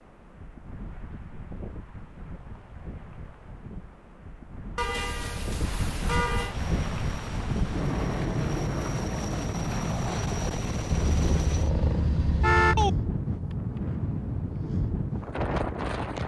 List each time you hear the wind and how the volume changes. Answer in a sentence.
The wind can be heard from 0.0 to 16.2 s, getting louder.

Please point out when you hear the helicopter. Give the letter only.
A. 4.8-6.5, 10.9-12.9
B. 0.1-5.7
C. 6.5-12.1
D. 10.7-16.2
C.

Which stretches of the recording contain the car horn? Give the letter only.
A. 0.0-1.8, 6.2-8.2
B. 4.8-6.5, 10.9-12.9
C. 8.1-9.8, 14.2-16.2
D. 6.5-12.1
B.